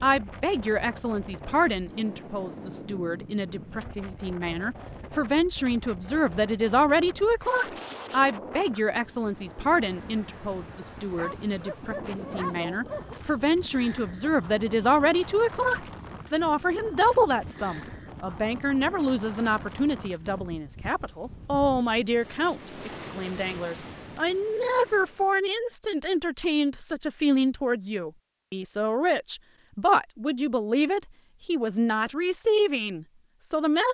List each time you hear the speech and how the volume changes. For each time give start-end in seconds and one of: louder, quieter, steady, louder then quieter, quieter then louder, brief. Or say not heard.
0.0-33.8 steady.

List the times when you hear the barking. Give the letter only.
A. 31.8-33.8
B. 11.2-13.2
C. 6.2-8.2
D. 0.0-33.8
B.